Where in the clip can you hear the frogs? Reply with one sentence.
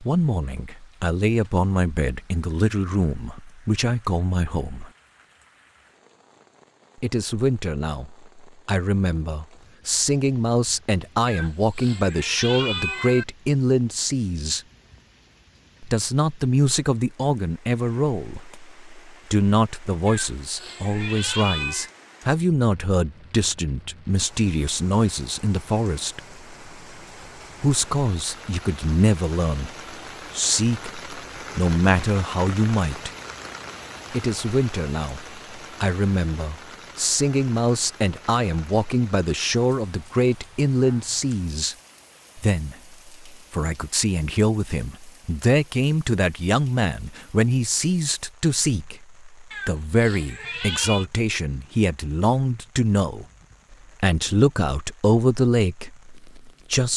The frogs can't be heard in this clip.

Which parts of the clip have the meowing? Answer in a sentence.
The meowing can be heard from 11.2 to 13.2 s, from 20.1 to 21.9 s and from 49.5 to 51.0 s.